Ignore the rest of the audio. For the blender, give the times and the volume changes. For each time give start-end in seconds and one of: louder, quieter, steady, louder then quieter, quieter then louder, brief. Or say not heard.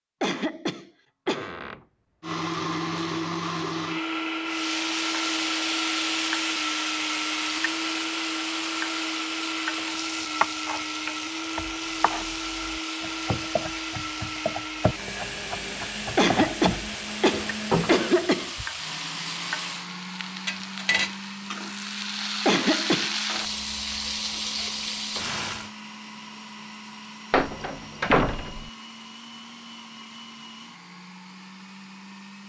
2.2-32.4 quieter.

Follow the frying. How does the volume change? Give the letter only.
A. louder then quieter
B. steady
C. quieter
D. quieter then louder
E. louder
D.